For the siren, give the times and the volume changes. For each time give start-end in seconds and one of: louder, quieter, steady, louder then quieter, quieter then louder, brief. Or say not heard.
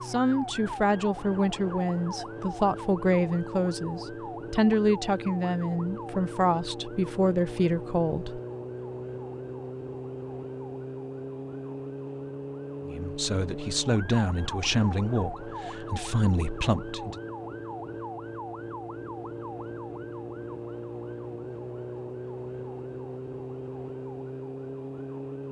0.0-25.4 steady.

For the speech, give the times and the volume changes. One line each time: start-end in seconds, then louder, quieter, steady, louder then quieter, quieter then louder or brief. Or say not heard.
0.0-8.4 steady
12.8-17.1 quieter then louder.